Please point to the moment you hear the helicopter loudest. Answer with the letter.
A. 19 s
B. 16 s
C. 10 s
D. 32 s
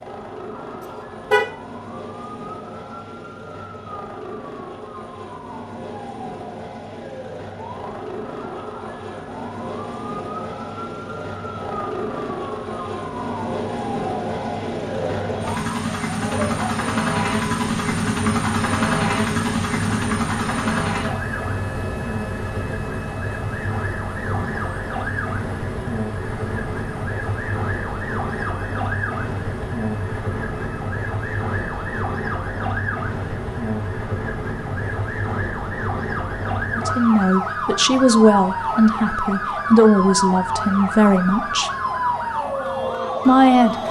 A.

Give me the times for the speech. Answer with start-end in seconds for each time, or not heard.
36.7-41.7, 43.2-43.8.